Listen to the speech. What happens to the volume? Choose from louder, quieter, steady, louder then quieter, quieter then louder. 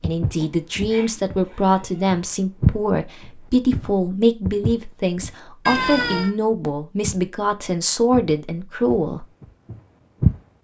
steady.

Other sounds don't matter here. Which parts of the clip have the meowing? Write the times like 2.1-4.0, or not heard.
0.3-2.2, 5.7-6.3.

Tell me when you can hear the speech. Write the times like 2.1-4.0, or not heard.
0.0-9.2.